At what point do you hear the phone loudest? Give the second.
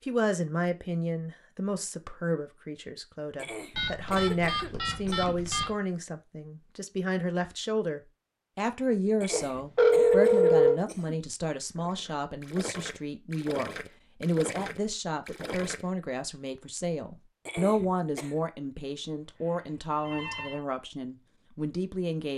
10 s.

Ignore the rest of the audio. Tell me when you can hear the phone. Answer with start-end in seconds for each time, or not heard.
3.8-5.7, 9.3-10.8, 19.4-20.6.